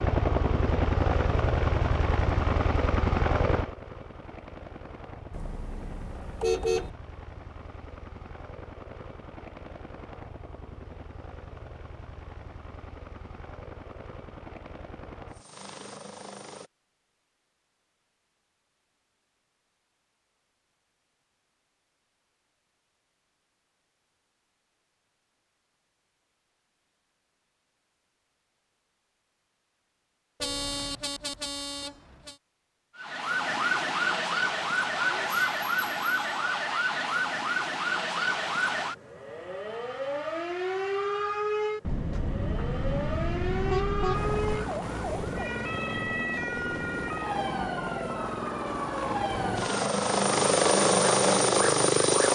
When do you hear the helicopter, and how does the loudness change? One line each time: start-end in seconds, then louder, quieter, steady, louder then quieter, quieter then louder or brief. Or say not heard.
0.0-16.7 quieter
44.1-52.2 louder.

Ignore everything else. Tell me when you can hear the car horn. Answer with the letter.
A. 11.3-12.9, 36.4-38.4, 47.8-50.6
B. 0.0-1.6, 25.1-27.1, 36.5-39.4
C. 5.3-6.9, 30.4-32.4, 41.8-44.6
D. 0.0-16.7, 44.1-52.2
C.